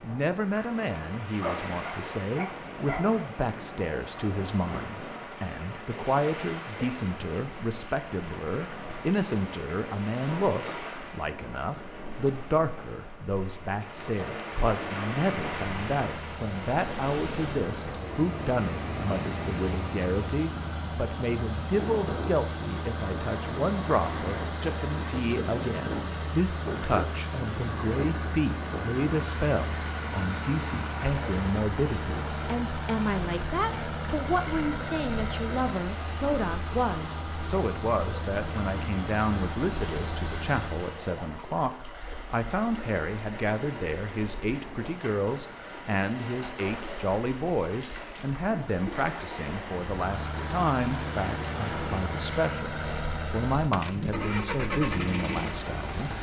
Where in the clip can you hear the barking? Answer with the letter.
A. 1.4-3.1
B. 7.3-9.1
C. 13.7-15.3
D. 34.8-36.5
A.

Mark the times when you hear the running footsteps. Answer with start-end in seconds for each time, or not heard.
not heard.